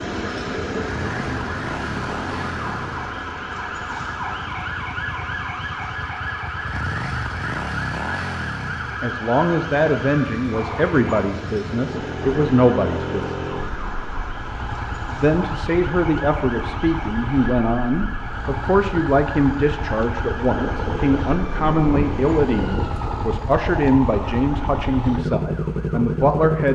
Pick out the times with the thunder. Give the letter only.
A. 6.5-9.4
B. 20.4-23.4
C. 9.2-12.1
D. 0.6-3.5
B.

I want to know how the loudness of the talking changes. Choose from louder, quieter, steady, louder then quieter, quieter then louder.
steady.